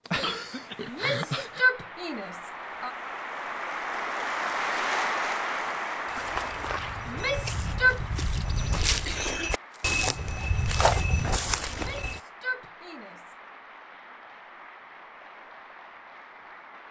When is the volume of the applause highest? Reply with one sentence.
The loudest moment of the applause is at 5 seconds.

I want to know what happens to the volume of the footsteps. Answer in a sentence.
The loudness of the footsteps goes up.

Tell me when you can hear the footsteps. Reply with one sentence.
The footsteps can be heard from 6.0 to 12.2 s.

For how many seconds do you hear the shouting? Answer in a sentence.
You can hear the shouting for 5 seconds altogether.